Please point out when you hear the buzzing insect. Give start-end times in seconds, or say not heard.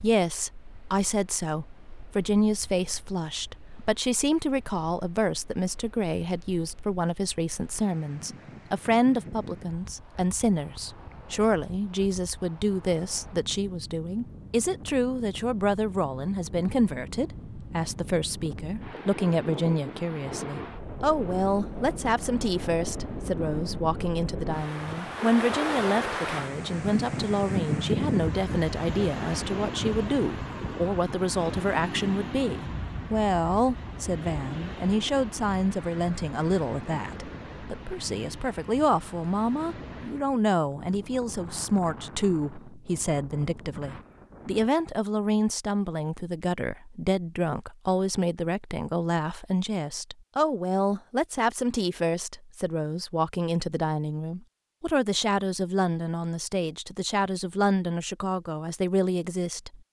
not heard.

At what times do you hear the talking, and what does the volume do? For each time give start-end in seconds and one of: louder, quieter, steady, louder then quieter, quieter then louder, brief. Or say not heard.
0.0-59.8 steady.